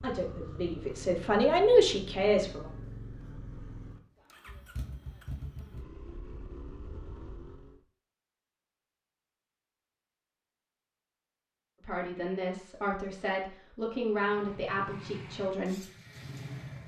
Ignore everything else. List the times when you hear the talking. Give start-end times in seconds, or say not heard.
0.0-2.7, 11.8-15.8.